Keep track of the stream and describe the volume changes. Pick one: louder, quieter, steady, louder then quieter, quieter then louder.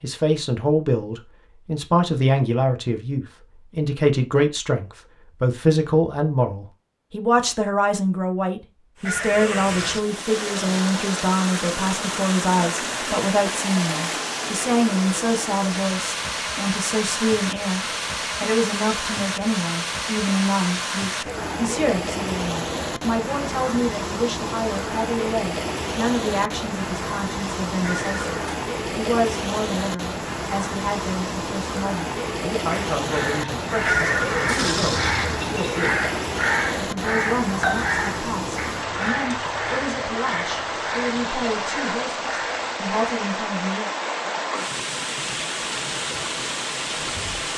steady.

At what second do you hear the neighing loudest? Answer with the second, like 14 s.
34 s.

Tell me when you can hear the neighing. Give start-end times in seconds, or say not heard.
9.1-10.1, 27.8-28.6, 33.9-35.4.